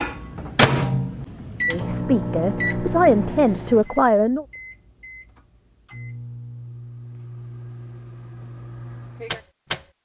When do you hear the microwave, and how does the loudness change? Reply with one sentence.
You can hear the microwave from 0.0 to 9.8 s, getting quieter then louder.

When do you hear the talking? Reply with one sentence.
You can hear the talking from 1.6 to 4.5 s.